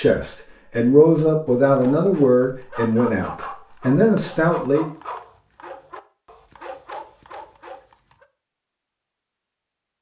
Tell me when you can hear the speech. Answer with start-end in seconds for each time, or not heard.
0.0-4.9.